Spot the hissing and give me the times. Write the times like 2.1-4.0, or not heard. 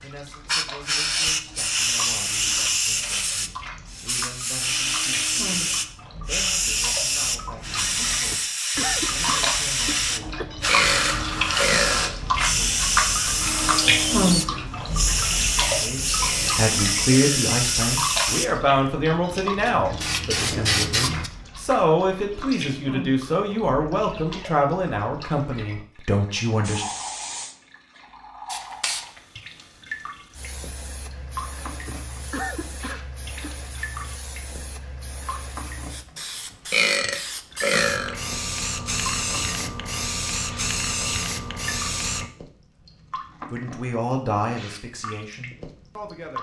0.0-21.3, 26.6-42.3.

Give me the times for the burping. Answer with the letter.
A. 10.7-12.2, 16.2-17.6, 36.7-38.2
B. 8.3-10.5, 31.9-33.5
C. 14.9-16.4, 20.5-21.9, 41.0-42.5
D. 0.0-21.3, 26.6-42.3
A.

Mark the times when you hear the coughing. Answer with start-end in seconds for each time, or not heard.
8.3-10.5, 31.9-33.5.